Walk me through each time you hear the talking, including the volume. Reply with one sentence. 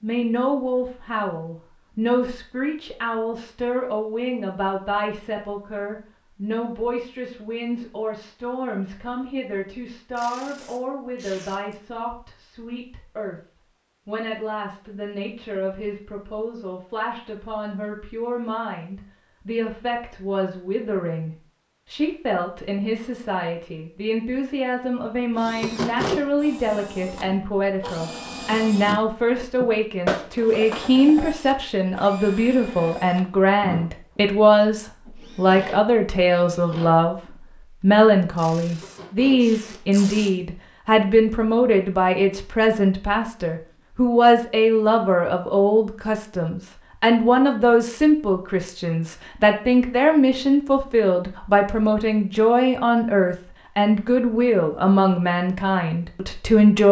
You can hear the talking from 0.0 to 13.4 s, getting quieter; and from 14.1 to 56.8 s, getting louder.